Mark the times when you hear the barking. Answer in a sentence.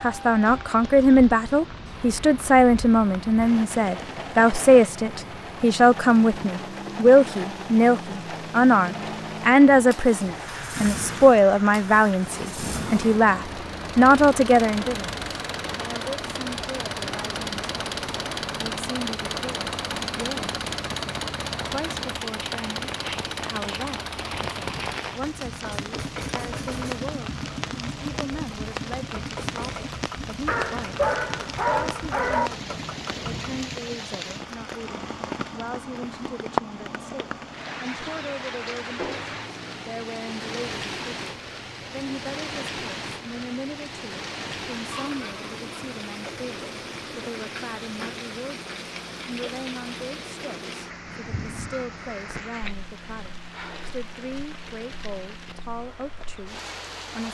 You can hear the barking from 30.4 to 32.5 s.